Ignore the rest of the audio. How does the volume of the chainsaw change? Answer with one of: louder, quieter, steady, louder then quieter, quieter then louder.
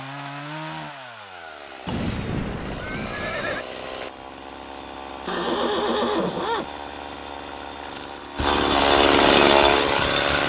louder.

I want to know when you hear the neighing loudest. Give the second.
6 s.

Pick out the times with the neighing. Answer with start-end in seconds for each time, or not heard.
1.9-3.6, 5.2-6.7.